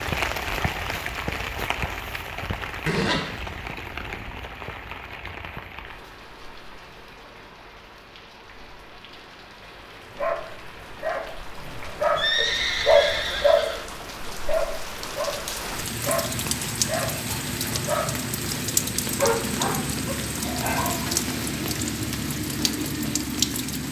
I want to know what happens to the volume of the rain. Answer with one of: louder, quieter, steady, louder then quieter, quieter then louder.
quieter then louder.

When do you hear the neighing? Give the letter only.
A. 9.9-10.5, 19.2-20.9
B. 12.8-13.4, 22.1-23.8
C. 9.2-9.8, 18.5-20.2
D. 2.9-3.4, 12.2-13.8
D.